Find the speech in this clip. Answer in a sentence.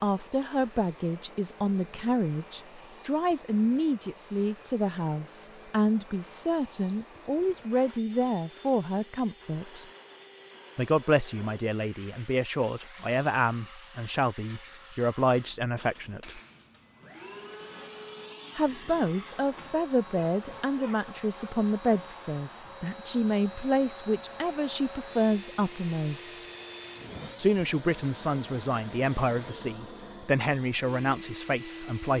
You can hear the speech from 0.0 to 9.8 s, from 10.8 to 16.4 s, from 18.6 to 26.4 s and from 27.4 to 32.1 s.